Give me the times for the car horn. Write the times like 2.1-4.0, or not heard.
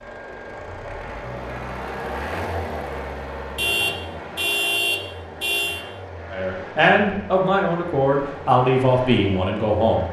3.5-5.8.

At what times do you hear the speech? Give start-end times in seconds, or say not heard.
6.3-10.0.